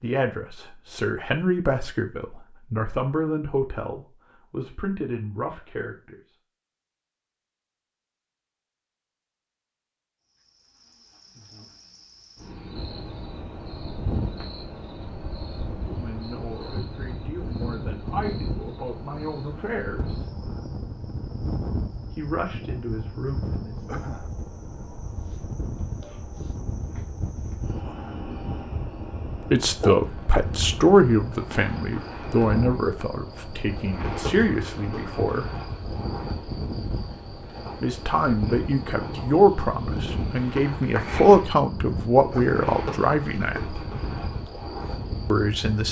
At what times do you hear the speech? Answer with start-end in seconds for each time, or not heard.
0.0-6.2, 15.7-20.2, 22.1-23.8, 29.5-35.5, 37.8-43.8, 45.3-45.8.